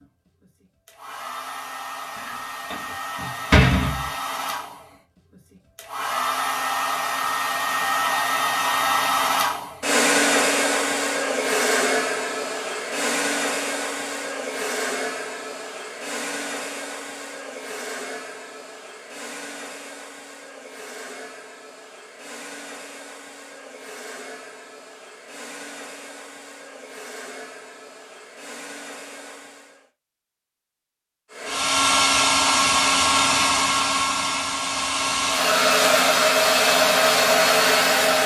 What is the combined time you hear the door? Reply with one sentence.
The door can be heard for 2 seconds in total.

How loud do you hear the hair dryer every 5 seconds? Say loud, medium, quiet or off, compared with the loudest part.
quiet, medium, medium, quiet, quiet, quiet, loud, loud.